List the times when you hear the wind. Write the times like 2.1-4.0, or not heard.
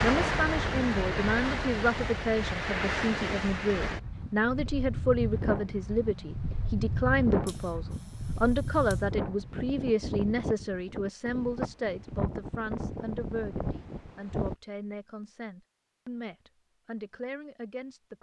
0.0-14.6.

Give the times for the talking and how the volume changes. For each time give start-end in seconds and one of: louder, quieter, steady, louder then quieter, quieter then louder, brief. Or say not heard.
0.0-18.1 quieter.